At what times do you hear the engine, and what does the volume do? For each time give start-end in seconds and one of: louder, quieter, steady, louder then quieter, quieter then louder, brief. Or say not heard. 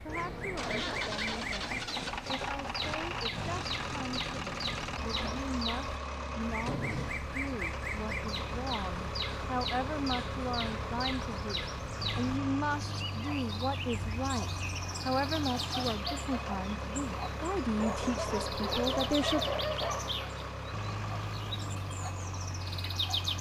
0.0-23.3 steady.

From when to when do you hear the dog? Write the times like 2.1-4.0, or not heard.
17.8-20.1.